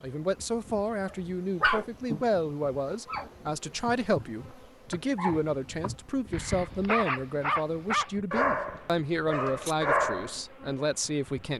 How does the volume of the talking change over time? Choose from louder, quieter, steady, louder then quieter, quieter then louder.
steady.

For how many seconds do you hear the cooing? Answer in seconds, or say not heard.
not heard.